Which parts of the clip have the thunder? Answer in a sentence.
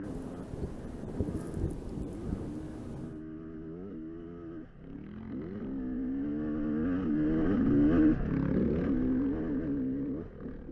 The thunder can be heard from 0.0 to 3.2 s.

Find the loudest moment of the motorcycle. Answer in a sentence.
The volume of the motorcycle peaks at 8 seconds.